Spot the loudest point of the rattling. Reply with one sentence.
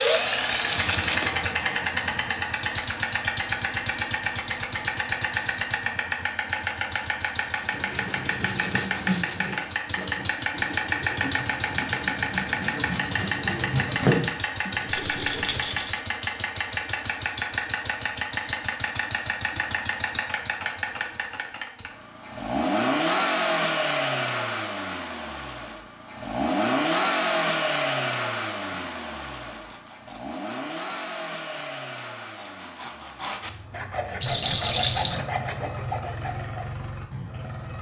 The volume of the rattling peaks at 35 seconds.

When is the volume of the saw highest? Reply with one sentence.
The volume of the saw peaks at 14 seconds.